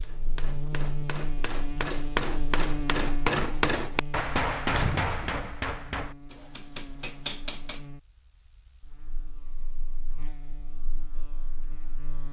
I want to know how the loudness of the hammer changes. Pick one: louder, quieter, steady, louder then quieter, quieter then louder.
louder then quieter.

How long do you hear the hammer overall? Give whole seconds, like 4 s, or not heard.
8 s.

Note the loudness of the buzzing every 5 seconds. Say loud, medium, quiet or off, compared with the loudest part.
loud, quiet, quiet.